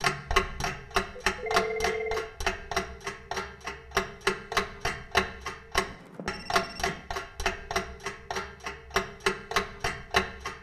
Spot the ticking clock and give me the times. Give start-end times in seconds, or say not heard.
0.0-10.5.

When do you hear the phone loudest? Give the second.
2 s.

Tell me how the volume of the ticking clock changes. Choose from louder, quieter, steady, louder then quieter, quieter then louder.
steady.